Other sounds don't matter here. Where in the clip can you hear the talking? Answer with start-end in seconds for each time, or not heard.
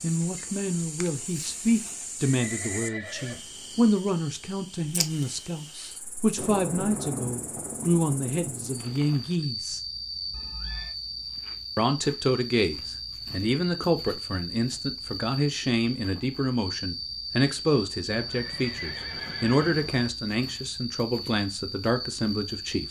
0.0-9.8, 11.8-22.8.